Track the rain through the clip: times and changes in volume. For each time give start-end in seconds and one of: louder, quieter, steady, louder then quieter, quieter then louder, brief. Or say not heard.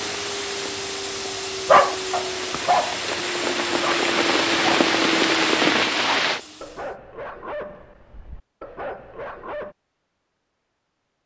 0.0-6.4 louder.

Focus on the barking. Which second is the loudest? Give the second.
2 s.